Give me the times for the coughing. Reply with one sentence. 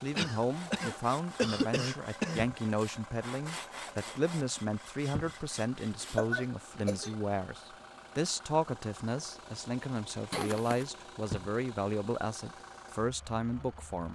The coughing can be heard from 0.1 to 2.5 s, from 6.0 to 7.2 s and from 10.3 to 10.8 s.